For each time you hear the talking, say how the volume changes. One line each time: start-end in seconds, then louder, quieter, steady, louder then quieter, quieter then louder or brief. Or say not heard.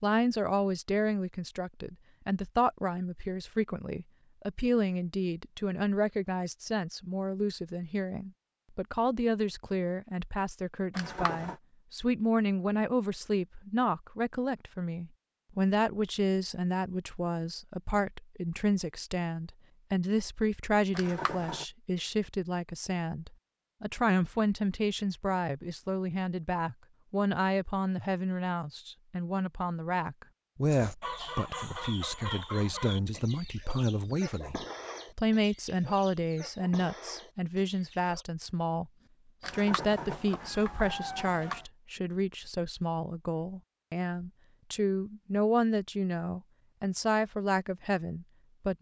0.0-48.7 steady.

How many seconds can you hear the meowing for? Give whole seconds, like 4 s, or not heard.
4 s.